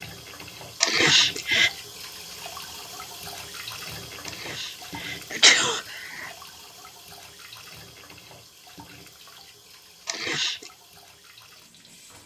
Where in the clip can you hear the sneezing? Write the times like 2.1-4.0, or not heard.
0.8-1.7, 4.2-6.3, 10.1-10.7.